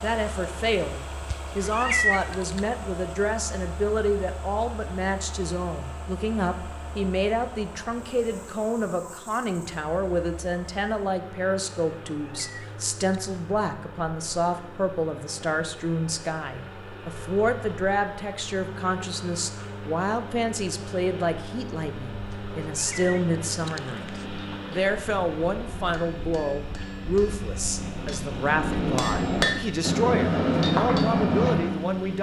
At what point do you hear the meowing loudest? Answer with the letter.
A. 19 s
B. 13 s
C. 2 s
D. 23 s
C.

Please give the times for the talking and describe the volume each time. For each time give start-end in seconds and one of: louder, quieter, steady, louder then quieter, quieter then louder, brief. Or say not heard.
0.0-32.1 steady.